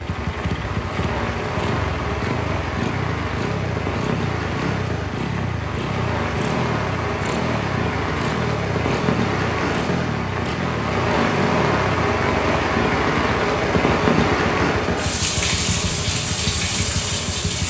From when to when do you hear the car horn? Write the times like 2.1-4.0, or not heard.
not heard.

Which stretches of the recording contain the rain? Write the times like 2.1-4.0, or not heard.
0.0-17.6.